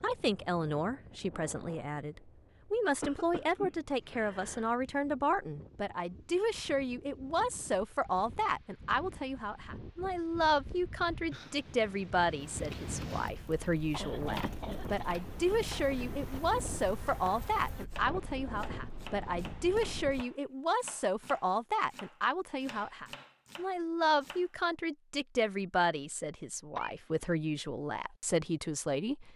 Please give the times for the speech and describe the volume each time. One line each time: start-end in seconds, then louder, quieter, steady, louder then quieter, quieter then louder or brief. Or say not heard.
0.0-29.3 steady.